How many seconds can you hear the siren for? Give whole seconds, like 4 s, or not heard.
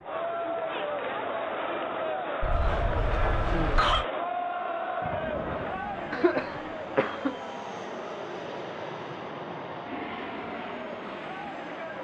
not heard.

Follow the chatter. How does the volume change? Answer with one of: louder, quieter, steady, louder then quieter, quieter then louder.
quieter.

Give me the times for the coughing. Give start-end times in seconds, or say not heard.
2.4-4.0, 6.1-7.3.